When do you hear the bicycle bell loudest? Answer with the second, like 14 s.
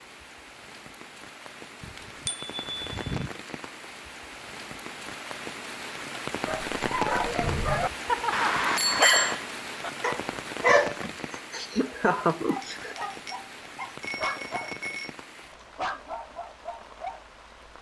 9 s.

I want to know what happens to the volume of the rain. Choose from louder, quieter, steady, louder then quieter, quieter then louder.
louder then quieter.